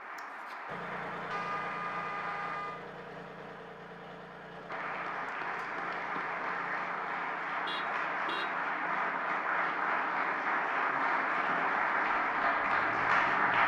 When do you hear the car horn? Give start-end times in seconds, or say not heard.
1.2-2.8, 7.7-8.5.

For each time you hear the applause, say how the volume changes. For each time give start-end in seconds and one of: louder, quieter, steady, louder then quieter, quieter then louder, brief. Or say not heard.
0.0-2.6 brief
4.7-13.6 louder.